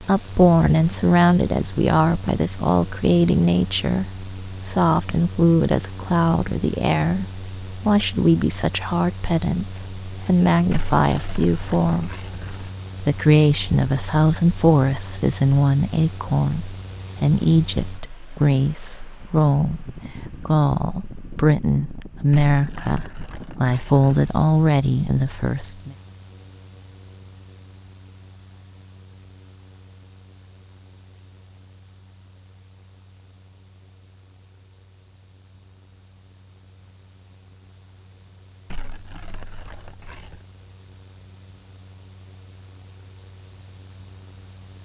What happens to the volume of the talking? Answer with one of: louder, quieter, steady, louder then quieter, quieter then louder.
steady.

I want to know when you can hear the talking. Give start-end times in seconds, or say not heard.
0.0-12.1, 13.0-25.9.